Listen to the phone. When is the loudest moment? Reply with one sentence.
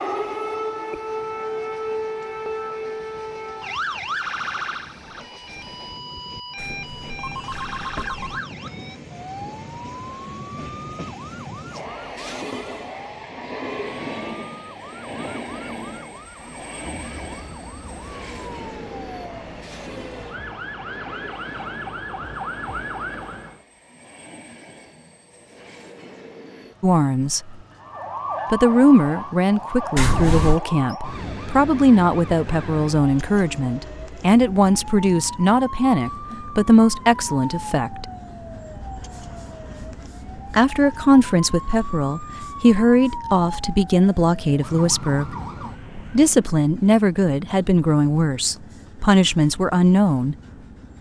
The volume of the phone peaks at 30 seconds.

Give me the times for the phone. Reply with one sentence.
You can hear the phone from 6.5 to 8.4 s and from 29.9 to 30.6 s.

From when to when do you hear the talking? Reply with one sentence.
You can hear the talking from 26.8 to 27.6 s, from 28.5 to 38.0 s, from 40.5 to 45.4 s and from 46.1 to 50.4 s.